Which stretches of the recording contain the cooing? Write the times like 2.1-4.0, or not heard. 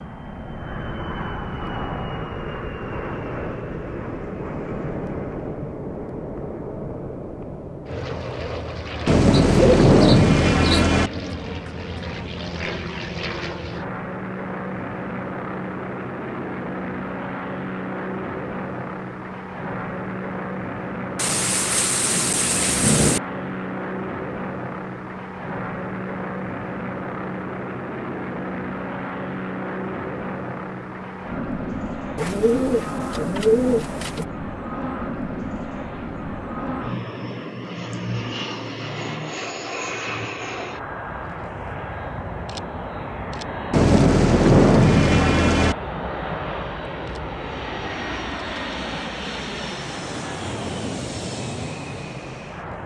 9.5-10.9, 32.1-34.2.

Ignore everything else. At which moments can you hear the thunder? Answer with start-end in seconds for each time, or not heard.
9.1-11.1, 21.1-23.2, 43.7-45.8.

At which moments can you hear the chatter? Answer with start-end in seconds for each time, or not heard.
not heard.